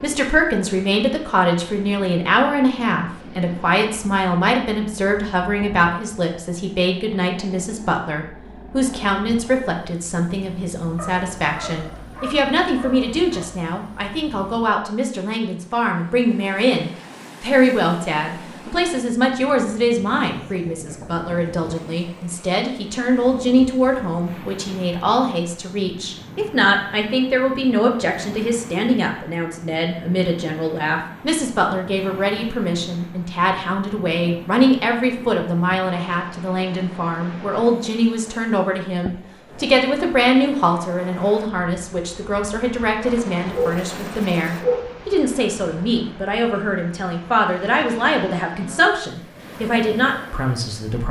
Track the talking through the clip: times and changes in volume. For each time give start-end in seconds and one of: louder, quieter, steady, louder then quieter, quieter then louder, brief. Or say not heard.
0.0-51.0 steady.